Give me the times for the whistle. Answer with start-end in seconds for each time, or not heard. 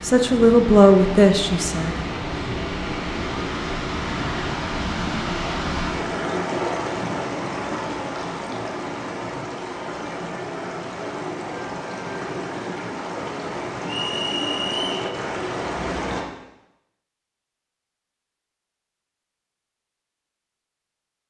13.8-15.1.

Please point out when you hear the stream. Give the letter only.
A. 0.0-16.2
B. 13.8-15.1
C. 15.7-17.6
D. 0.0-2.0
A.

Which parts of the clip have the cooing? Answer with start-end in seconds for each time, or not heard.
not heard.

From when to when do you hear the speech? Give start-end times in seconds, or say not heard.
0.0-2.0.